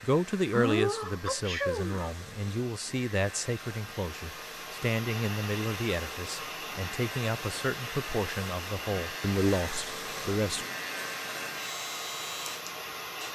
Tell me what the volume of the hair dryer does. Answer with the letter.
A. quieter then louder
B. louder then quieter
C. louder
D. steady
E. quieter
C.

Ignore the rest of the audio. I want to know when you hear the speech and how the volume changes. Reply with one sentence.
You can hear the speech from 0.0 to 10.7 s, at a steady volume.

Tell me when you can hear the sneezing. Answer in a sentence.
You can hear the sneezing from 0.5 to 2.1 s.